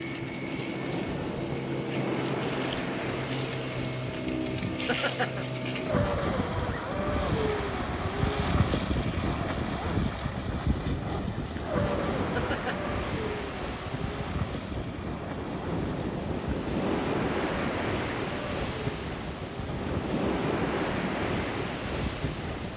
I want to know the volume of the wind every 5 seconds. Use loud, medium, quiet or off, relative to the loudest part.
loud, medium, medium, loud, loud.